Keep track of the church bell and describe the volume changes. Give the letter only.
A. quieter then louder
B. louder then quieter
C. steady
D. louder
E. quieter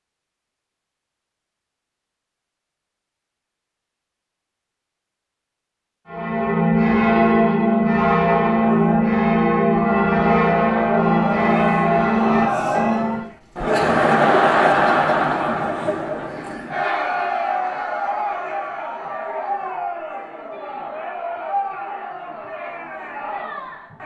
C.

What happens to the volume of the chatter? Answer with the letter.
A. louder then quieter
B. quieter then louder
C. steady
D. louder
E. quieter
A.